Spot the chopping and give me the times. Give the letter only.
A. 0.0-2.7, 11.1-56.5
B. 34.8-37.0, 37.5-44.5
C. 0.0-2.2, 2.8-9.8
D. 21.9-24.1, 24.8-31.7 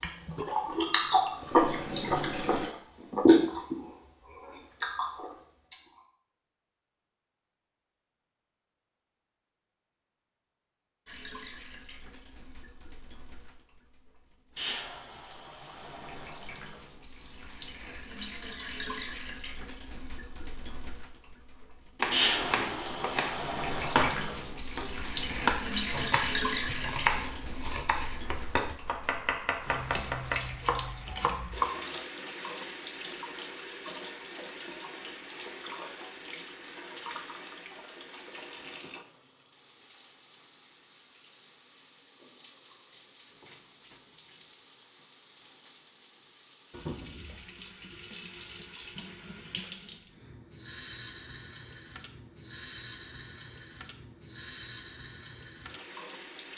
D.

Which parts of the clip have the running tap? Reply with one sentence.
The running tap can be heard from 0.0 to 2.7 s and from 11.1 to 56.5 s.